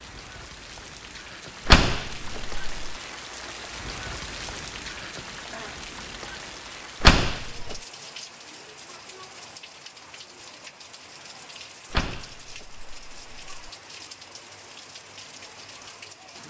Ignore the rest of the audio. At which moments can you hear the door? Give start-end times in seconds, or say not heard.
1.6-3.0, 7.0-7.8, 11.9-13.7.